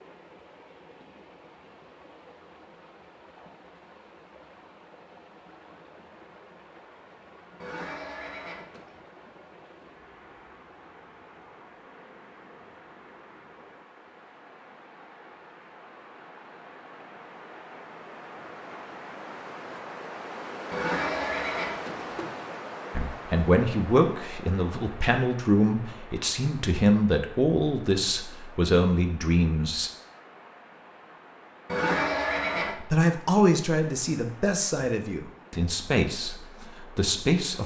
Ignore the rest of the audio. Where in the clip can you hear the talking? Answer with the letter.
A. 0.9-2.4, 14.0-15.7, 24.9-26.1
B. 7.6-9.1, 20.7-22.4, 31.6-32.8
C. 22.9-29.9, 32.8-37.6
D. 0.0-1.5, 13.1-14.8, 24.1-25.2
C.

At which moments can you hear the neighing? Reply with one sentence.
You can hear the neighing from 7.6 to 9.1 s, from 20.7 to 22.4 s and from 31.6 to 32.8 s.